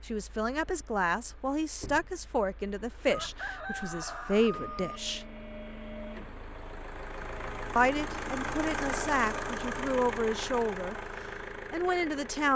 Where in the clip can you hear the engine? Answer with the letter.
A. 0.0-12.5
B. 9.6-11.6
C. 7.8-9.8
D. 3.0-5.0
A.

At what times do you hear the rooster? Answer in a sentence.
You can hear the rooster from 3.0 to 5.0 s.